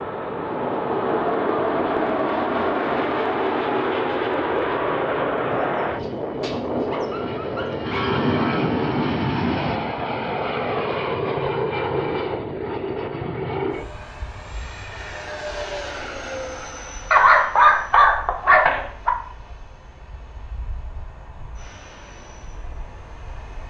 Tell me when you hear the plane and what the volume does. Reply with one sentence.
The plane can be heard from 0.0 to 23.6 s, getting quieter.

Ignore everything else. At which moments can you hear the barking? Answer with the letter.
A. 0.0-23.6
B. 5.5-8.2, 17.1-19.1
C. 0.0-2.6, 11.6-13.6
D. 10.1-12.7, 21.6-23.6
B.